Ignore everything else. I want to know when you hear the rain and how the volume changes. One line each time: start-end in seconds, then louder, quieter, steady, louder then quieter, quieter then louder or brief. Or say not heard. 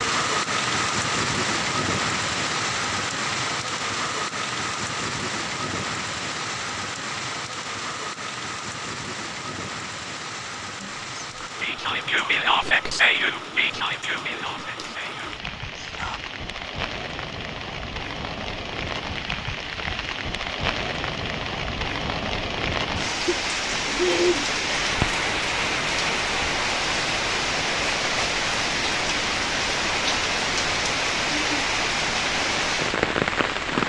0.0-33.8 quieter then louder.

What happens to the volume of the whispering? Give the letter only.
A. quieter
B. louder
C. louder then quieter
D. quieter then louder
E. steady
A.